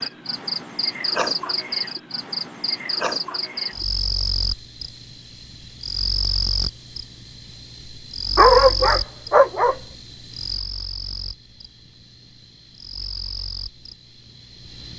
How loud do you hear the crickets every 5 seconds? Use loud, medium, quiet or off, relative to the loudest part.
loud, loud, medium.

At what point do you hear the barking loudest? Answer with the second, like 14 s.
9 s.